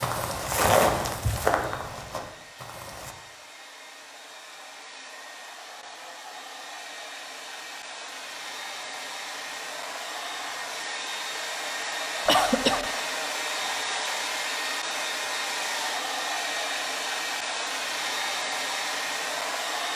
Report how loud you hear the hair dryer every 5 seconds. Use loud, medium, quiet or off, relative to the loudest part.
quiet, medium, loud, loud.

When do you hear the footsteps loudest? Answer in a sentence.
The volume of the footsteps peaks at 1 second.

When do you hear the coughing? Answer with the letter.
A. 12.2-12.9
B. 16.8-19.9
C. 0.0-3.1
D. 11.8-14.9
A.